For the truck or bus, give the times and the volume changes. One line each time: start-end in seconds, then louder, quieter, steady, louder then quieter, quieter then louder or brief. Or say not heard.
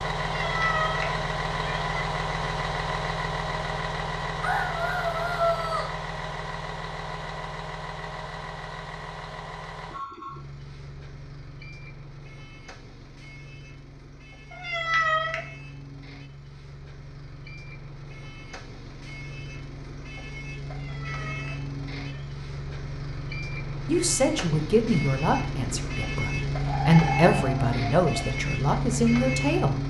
0.0-29.8 quieter then louder.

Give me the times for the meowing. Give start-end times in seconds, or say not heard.
0.2-1.9, 14.5-15.4, 20.6-22.2.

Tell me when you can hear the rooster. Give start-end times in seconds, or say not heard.
4.4-6.0, 26.6-28.4.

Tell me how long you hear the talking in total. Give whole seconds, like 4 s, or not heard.
6 s.